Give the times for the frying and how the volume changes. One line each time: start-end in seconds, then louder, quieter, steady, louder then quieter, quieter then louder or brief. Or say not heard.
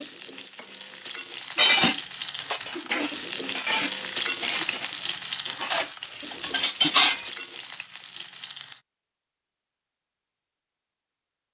0.0-8.8 louder then quieter.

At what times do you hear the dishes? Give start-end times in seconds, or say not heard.
1.6-7.3.